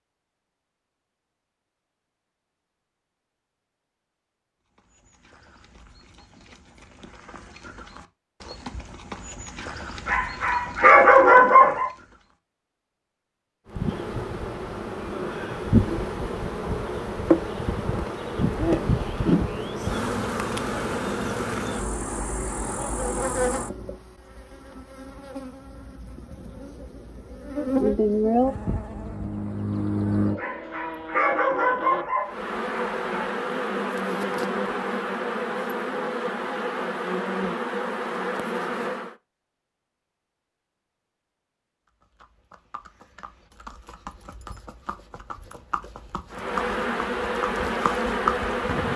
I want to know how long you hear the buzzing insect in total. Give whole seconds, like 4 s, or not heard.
28 s.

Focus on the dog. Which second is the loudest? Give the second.
11 s.